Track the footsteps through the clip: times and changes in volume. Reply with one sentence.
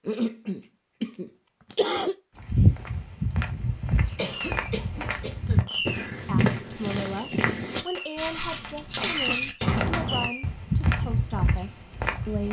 The footsteps can be heard from 2.4 to 12.4 s, at a steady volume.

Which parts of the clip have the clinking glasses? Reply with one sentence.
You can't hear the clinking glasses here.